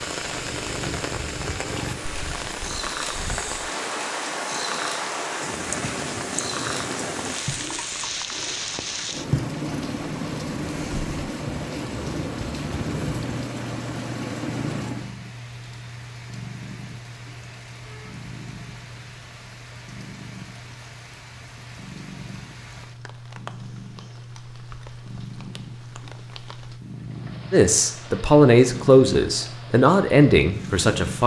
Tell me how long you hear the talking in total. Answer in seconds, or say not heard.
4 s.